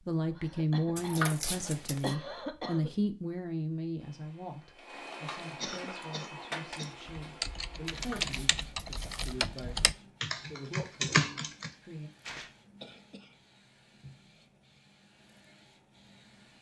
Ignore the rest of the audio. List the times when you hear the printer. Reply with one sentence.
The printer can be heard from 4.0 to 16.5 s.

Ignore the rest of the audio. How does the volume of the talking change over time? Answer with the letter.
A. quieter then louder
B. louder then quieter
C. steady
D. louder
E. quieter
E.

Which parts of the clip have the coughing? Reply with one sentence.
The coughing can be heard from 0.3 to 2.9 s, from 5.6 to 7.0 s and from 12.8 to 13.4 s.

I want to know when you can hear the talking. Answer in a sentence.
The talking can be heard from 0.1 to 12.1 s.